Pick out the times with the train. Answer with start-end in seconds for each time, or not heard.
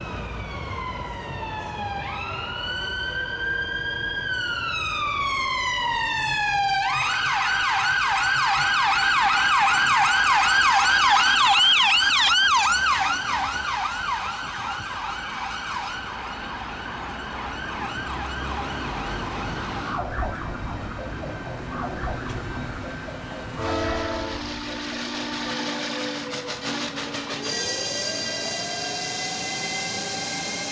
0.0-30.6.